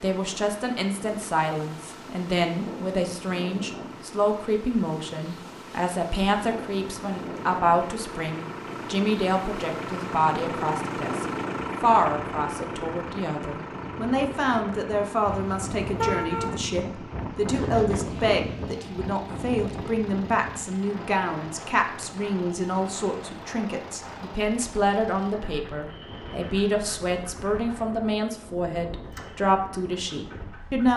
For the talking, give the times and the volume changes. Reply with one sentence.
The talking can be heard from 0.0 to 30.9 s, at a steady volume.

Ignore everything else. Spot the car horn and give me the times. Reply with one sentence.
You can hear the car horn from 15.2 to 16.6 s.